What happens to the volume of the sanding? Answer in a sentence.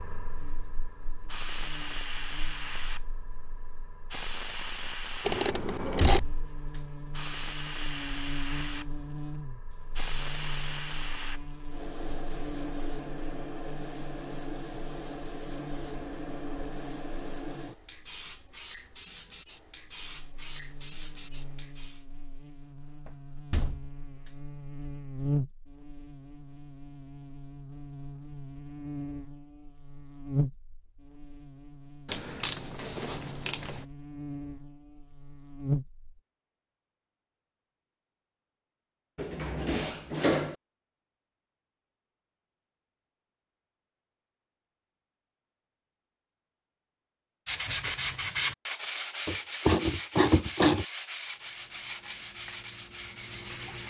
The volume of the sanding goes down.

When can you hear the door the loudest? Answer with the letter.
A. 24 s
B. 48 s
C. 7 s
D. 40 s
D.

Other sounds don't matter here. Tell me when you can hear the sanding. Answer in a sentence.
The sanding can be heard from 47.5 to 53.8 s.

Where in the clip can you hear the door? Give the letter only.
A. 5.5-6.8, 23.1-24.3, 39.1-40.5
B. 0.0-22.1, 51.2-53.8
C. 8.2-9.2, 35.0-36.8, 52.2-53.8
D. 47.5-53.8
A.